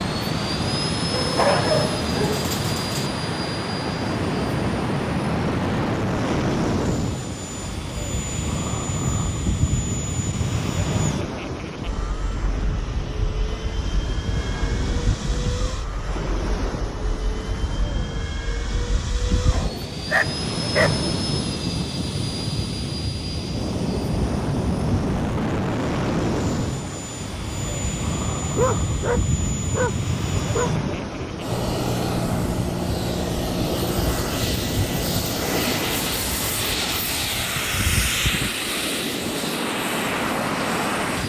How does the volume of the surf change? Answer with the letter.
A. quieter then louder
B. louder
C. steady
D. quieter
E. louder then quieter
C.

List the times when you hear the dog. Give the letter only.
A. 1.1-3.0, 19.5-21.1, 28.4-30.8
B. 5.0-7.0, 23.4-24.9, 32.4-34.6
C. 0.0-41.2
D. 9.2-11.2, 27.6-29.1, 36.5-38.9
A.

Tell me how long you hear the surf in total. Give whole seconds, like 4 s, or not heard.
41 s.